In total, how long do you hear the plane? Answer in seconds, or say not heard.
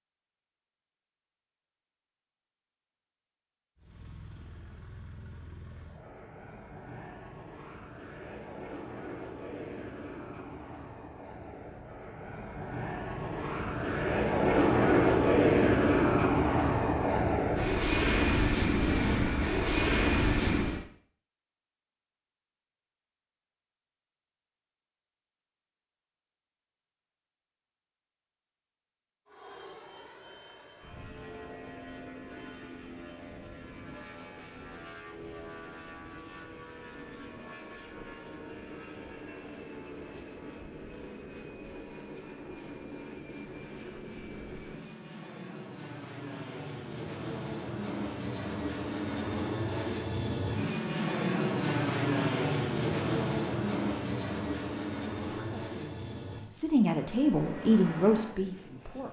47 s.